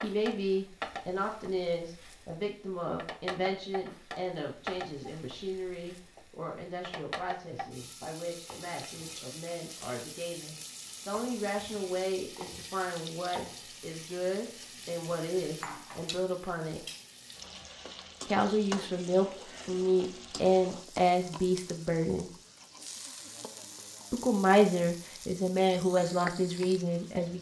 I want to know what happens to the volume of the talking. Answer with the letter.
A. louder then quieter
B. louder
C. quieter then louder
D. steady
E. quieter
C.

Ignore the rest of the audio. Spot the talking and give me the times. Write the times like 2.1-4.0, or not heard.
0.0-16.9, 18.2-22.3, 24.1-27.3.